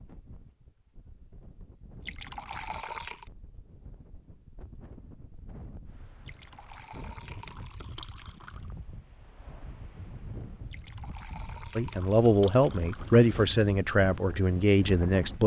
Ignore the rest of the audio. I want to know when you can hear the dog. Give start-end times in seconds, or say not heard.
not heard.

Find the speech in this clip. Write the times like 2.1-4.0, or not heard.
11.8-15.4.